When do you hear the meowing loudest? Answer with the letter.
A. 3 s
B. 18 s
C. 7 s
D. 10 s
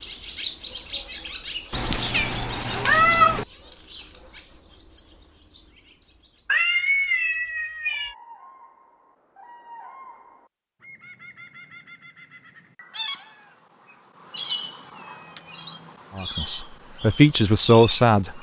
A.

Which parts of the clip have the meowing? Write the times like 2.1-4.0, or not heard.
1.7-3.5, 6.5-8.2, 14.9-15.4.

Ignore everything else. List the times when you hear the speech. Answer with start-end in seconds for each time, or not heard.
16.1-18.3.